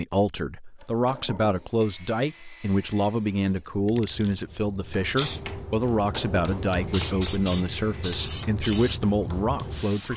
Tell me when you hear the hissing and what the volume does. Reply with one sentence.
The hissing can be heard from 1.5 to 10.1 s, getting louder.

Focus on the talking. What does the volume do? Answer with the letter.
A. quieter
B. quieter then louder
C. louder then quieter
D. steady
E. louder
D.